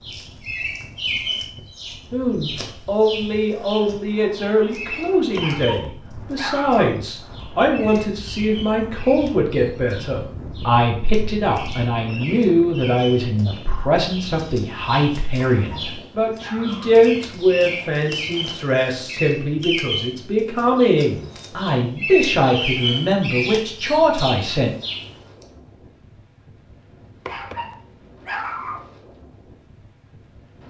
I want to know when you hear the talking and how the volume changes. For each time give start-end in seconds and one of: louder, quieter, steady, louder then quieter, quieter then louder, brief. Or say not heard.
2.1-24.7 steady.